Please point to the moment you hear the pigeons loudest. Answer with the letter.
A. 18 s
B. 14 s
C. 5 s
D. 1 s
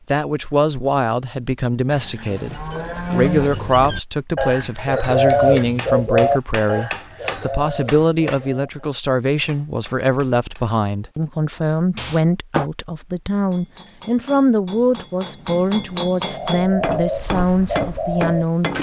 C.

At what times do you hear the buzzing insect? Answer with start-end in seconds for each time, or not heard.
not heard.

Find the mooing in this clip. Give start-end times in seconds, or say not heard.
1.9-3.8.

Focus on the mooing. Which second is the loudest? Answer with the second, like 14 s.
3 s.